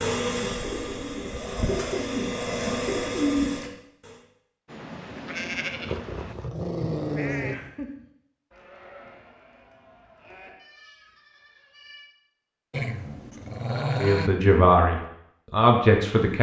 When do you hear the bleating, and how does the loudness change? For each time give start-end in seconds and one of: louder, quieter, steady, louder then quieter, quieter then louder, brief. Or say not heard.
4.7-12.1 quieter.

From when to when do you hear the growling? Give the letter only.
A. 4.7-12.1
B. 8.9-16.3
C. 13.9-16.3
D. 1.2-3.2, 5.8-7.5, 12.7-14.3
D.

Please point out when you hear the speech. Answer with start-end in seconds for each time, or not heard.
13.9-16.3.